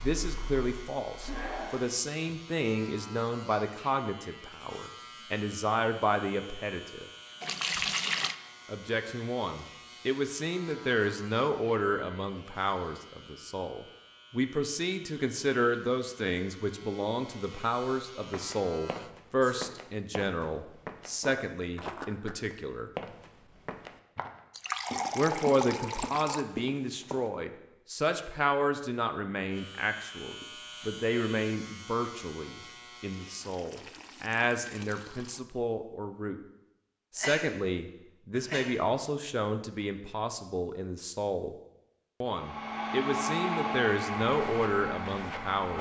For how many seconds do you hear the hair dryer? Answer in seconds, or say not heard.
5 s.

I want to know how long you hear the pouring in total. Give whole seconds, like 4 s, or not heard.
5 s.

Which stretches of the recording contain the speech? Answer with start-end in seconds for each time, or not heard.
0.0-7.0, 8.7-22.9, 25.1-36.4, 37.1-41.5, 42.2-45.7.